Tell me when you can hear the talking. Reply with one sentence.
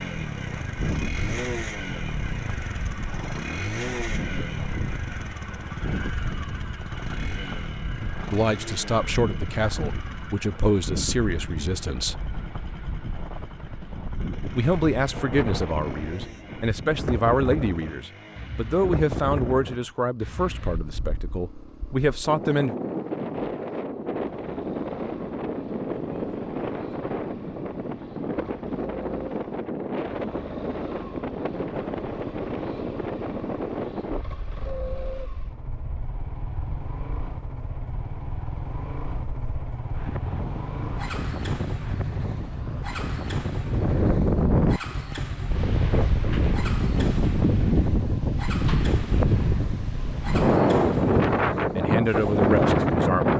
The talking can be heard from 8.2 to 12.2 s, from 14.6 to 22.8 s and from 51.8 to 53.3 s.